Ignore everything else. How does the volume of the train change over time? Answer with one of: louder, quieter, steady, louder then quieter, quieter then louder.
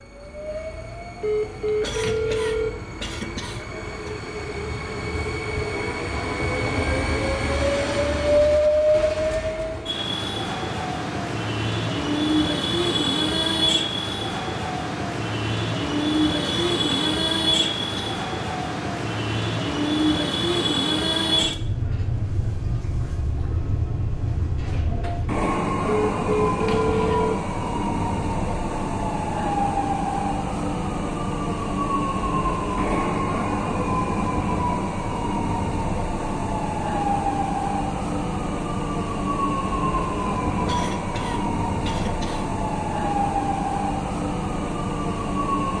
steady.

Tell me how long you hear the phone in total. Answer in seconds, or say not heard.
3 s.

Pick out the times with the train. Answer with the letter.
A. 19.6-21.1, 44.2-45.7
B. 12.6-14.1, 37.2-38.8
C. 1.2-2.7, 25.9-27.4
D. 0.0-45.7
D.